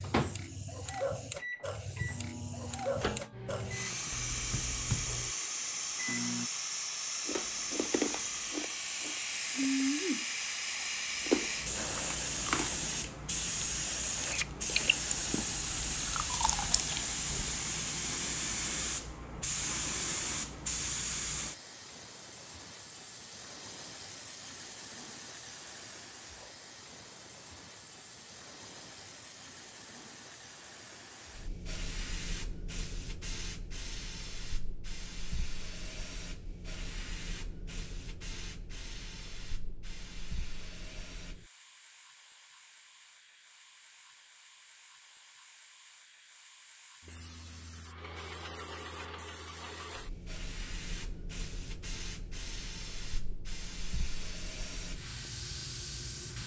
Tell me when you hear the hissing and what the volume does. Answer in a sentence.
The hissing can be heard from 0.0 to 56.4 s, getting quieter.